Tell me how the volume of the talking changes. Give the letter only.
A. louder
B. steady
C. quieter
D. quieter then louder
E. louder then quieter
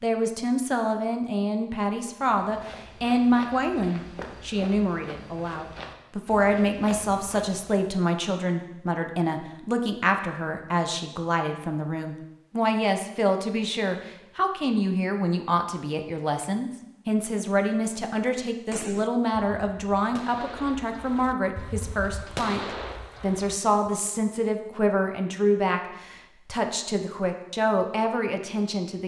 B.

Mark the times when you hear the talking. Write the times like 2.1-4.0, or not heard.
0.0-29.0.